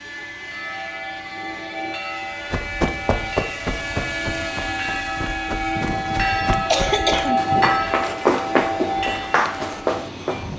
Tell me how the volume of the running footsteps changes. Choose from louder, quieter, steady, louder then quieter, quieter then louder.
quieter then louder.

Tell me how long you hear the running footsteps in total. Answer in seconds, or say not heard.
8 s.